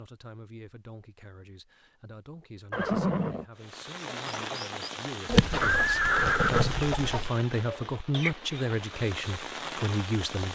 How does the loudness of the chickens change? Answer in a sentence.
The volume of the chickens goes up, then down.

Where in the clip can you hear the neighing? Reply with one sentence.
You can hear the neighing from 2.7 to 3.5 s and from 5.6 to 6.8 s.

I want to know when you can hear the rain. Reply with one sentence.
The rain can be heard from 3.5 to 10.4 s.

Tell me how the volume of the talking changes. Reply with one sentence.
The loudness of the talking goes up.